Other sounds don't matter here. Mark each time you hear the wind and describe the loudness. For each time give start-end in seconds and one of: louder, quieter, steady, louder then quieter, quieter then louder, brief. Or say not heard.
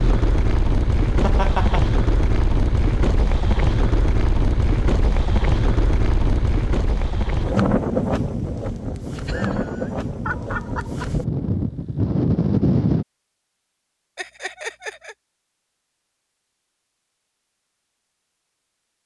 0.0-13.1 steady.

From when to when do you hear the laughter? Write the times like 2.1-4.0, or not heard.
1.2-1.9, 9.2-11.1, 14.2-15.2.